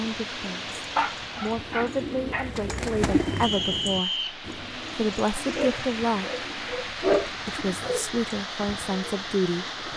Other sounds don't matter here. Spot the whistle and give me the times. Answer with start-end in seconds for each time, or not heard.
3.4-4.3.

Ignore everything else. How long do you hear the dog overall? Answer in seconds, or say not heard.
4 s.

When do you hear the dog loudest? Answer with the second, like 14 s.
7 s.